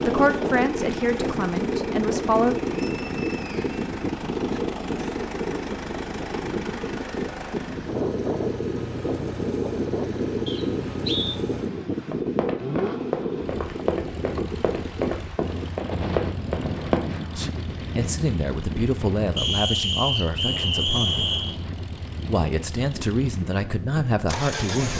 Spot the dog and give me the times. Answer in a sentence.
You can't hear the dog here.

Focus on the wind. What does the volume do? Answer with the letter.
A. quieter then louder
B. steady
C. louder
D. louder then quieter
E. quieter
E.